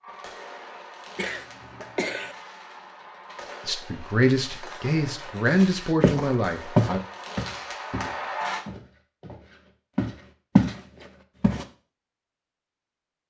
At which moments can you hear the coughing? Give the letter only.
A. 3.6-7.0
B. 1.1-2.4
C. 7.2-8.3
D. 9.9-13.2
B.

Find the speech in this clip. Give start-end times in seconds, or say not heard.
3.6-7.0.